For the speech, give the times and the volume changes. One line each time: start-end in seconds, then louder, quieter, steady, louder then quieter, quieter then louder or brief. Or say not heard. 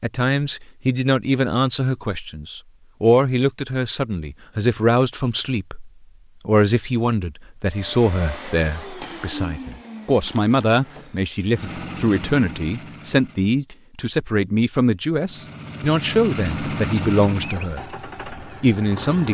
0.0-19.3 steady.